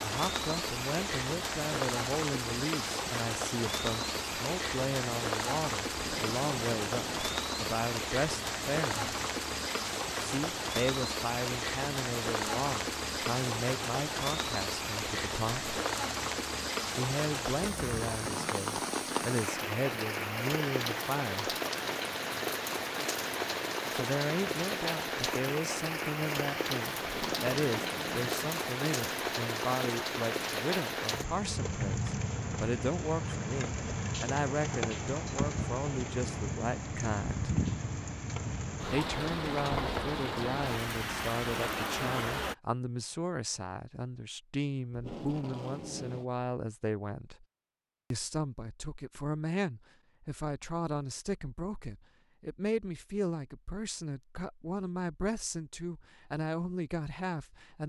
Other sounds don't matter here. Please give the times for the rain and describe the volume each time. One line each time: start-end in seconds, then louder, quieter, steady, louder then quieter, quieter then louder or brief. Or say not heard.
0.0-42.5 steady.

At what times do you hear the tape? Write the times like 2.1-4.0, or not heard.
5.9-7.3, 27.0-28.6, 44.9-46.2.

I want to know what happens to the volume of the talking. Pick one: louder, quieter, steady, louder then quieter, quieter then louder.
steady.